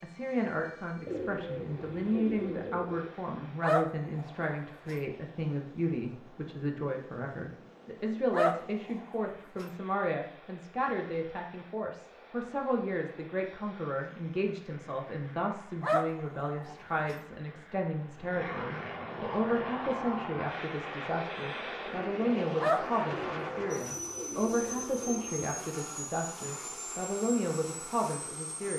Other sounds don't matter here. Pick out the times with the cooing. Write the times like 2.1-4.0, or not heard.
1.1-3.1, 23.1-25.4.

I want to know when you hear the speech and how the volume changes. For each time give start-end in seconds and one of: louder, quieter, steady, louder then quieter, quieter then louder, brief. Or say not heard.
0.0-28.7 steady.